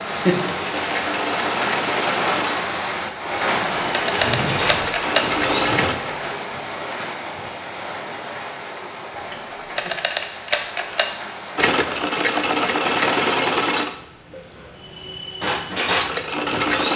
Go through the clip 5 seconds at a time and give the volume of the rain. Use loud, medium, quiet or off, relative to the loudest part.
loud, medium, medium, off.